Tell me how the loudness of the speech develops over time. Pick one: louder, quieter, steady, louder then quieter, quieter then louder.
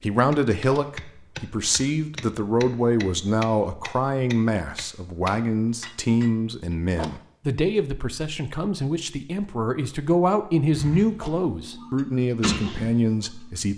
steady.